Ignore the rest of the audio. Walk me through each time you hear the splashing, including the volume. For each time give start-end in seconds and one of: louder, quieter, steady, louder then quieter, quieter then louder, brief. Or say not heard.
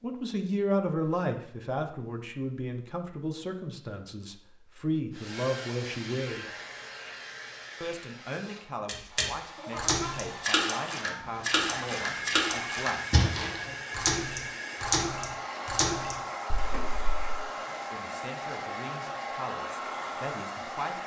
8.8-17.1 steady.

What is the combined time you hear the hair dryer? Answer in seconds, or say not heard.
16 s.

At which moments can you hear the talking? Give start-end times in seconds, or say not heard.
0.0-6.5, 7.8-13.8, 17.6-21.0.